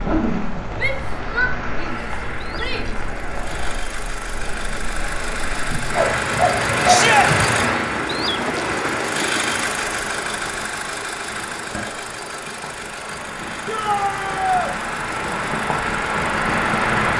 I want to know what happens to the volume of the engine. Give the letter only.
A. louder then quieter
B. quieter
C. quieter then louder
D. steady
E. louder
A.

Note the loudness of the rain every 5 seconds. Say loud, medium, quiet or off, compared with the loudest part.
medium, loud, medium, loud.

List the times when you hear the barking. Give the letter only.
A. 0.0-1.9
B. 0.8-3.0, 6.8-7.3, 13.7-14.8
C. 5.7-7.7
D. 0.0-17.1
C.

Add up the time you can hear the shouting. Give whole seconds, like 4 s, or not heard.
4 s.